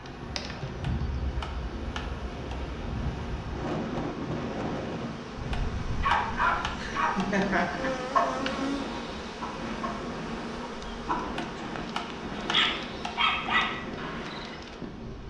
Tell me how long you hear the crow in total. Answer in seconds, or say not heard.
not heard.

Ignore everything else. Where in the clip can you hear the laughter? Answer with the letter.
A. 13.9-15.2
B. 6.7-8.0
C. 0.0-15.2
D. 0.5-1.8
B.